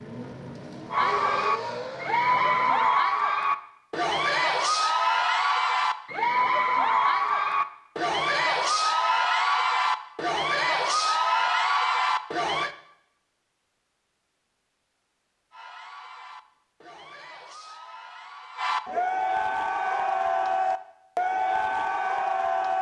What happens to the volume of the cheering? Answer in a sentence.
The loudness of the cheering goes down, then up.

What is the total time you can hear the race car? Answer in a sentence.
You can hear the race car for 3 seconds altogether.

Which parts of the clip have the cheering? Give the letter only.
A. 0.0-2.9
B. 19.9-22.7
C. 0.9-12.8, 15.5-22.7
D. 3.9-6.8
C.